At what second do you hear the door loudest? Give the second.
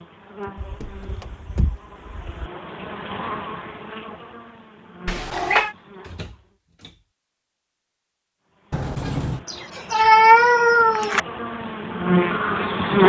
9 s.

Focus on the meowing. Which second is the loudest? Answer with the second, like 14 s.
10 s.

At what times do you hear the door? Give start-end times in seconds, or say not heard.
0.4-1.8, 6.0-7.0, 8.7-9.4.